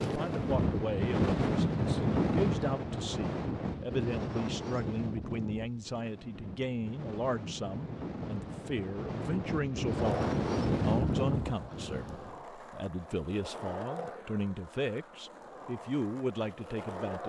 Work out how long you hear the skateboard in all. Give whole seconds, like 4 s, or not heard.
7 s.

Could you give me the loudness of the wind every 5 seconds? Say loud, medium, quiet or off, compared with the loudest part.
loud, medium, loud, off.